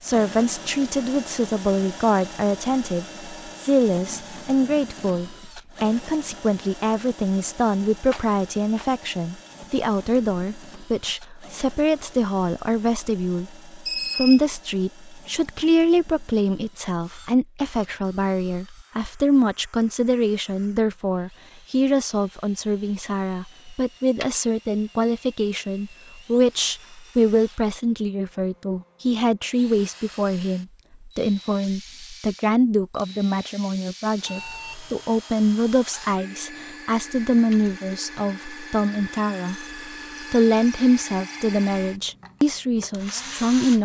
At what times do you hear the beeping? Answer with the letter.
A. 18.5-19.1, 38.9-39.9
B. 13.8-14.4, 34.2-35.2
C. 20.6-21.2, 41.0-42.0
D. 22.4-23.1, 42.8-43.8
B.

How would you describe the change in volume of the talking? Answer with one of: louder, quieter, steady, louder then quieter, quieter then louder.
steady.